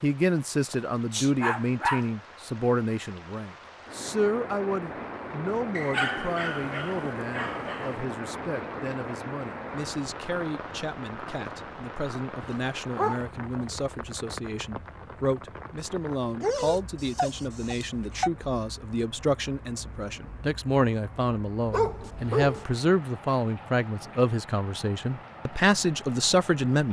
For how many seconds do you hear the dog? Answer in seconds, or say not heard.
7 s.